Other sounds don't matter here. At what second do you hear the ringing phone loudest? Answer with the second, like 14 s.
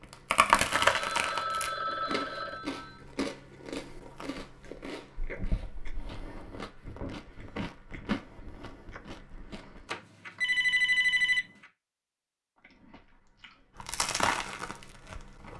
11 s.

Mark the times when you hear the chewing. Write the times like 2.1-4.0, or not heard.
0.0-9.8, 12.6-15.5.